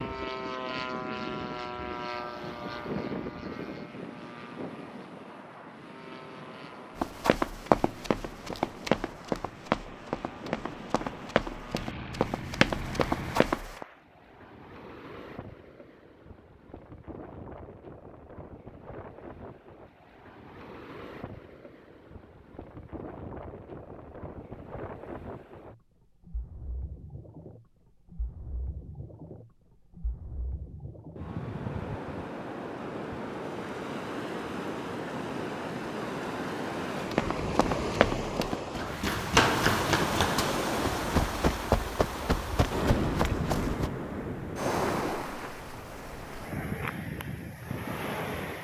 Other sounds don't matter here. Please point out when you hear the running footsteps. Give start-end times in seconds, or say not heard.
7.0-13.8, 37.1-43.9.